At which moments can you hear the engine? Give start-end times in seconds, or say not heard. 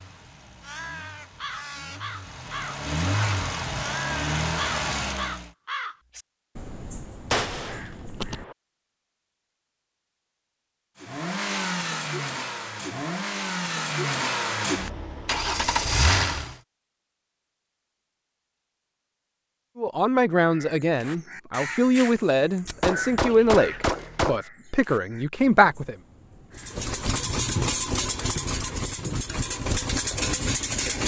0.0-5.5, 11.0-16.6, 26.6-31.0.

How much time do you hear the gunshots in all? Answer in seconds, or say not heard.
3 s.